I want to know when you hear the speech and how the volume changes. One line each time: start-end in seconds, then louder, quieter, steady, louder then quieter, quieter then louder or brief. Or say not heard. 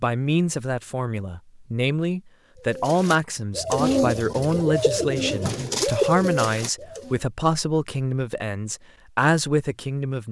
0.0-10.2 steady.